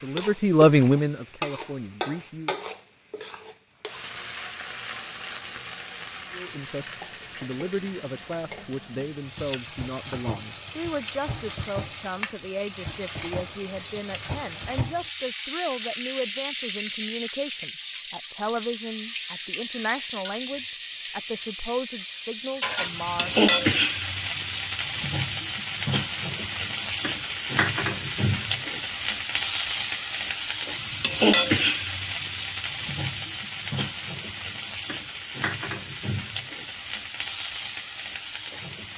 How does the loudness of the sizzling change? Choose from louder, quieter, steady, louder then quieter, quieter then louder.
louder.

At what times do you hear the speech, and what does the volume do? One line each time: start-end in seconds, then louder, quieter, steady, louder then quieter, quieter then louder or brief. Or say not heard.
0.0-2.5 brief
6.3-23.4 steady.